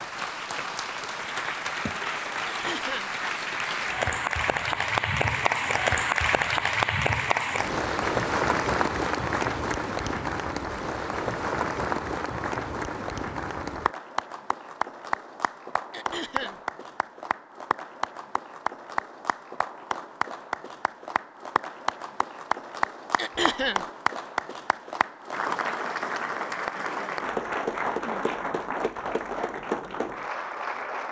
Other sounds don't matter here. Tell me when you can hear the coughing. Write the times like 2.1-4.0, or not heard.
2.5-3.1, 15.9-16.6, 23.1-23.9.